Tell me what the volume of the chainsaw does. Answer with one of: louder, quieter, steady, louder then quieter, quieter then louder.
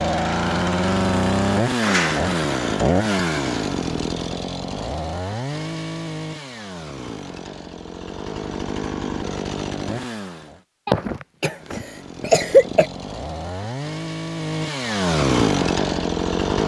quieter then louder.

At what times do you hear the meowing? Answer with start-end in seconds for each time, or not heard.
not heard.